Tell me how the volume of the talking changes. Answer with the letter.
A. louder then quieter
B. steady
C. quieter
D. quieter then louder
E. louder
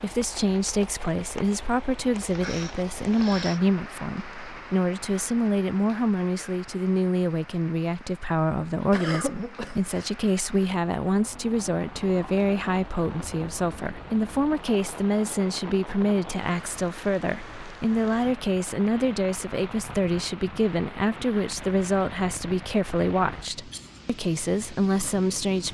B.